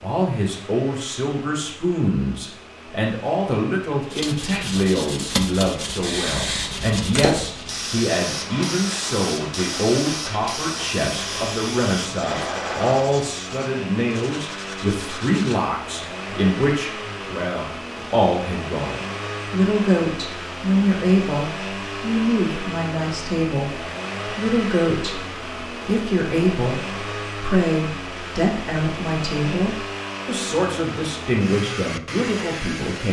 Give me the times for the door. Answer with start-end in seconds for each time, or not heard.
not heard.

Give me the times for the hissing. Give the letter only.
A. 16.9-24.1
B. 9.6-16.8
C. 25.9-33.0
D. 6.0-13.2
D.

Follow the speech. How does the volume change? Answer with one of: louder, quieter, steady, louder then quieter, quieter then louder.
steady.